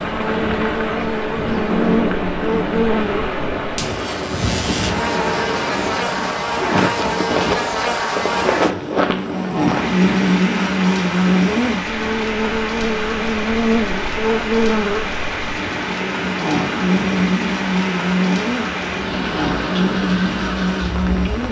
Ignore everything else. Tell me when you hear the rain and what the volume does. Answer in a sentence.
The rain can be heard from 0.0 to 21.4 s, at a steady volume.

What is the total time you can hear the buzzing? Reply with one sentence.
You can hear the buzzing for 21 seconds altogether.